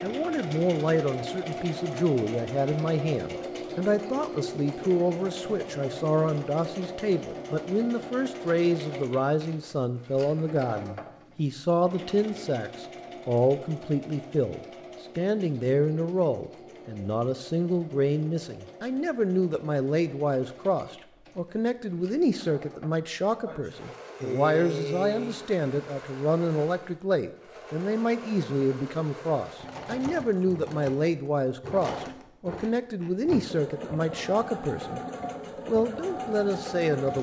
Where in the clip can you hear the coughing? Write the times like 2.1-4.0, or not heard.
23.4-25.6.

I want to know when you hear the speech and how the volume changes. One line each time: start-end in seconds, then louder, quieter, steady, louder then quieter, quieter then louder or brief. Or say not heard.
0.0-35.0 steady
35.6-37.1 brief.